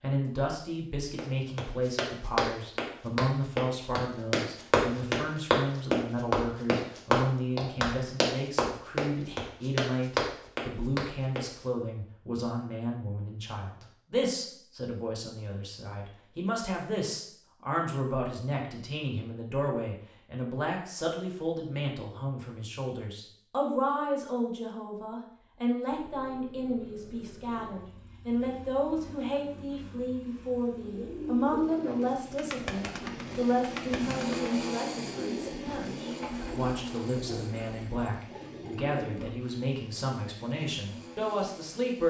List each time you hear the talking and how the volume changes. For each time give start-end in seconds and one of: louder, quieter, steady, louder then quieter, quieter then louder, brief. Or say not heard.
0.0-42.0 steady.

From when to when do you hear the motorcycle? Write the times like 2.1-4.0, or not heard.
25.9-42.0.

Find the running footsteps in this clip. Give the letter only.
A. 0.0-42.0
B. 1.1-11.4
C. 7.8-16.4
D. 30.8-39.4
B.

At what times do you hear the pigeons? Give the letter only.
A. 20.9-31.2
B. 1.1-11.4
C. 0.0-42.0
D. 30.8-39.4
D.